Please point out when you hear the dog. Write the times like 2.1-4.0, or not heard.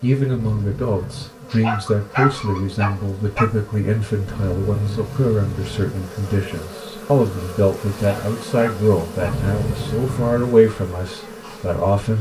1.5-3.5, 7.9-9.4.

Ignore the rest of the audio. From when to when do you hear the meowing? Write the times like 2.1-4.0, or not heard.
0.3-1.4, 4.2-5.9, 9.2-10.6.